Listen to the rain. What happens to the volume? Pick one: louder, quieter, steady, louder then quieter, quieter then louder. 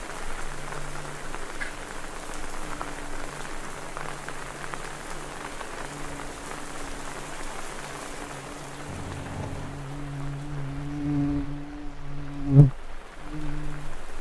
quieter.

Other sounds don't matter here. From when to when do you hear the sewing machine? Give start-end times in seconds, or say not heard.
not heard.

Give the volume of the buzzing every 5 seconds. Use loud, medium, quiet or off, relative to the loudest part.
quiet, quiet, loud.